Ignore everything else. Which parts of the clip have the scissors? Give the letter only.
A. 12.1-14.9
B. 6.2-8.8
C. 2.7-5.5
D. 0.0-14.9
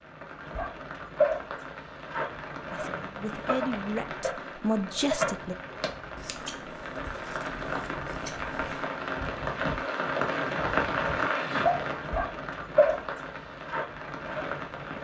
B.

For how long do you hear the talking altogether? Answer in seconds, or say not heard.
3 s.